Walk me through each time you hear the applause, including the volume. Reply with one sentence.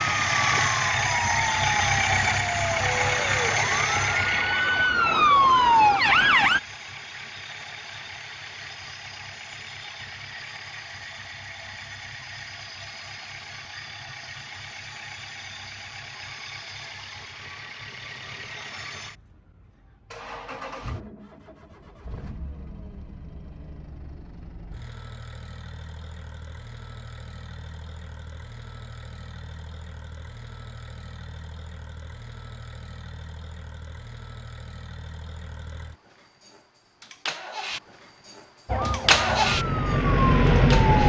The applause can't be heard in this clip.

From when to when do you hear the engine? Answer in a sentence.
You can hear the engine from 0.0 to 41.0 s.